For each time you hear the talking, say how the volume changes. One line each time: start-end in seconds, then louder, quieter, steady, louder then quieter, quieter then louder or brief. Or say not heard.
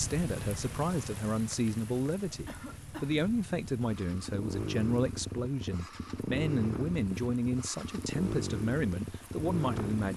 0.0-10.1 steady.